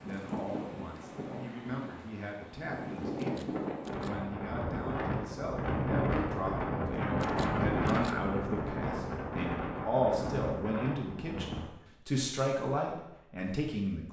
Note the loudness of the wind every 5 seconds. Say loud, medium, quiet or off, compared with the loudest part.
medium, loud, medium.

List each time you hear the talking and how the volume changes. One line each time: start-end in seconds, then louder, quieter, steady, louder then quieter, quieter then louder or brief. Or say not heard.
0.0-14.0 louder.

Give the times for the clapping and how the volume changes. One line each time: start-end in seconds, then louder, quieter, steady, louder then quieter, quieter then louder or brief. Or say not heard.
not heard.